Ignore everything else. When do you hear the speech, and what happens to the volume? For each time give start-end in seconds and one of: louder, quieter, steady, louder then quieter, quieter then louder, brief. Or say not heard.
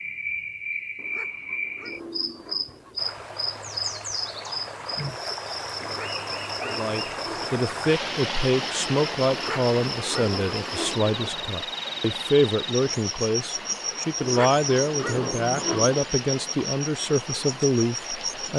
6.7-18.5 steady.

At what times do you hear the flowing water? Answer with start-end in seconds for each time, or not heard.
3.0-18.5.